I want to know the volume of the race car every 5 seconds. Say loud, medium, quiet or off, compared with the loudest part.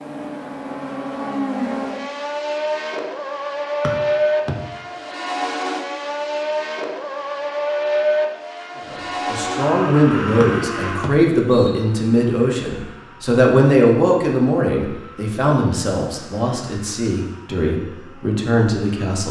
loud, loud, medium, quiet.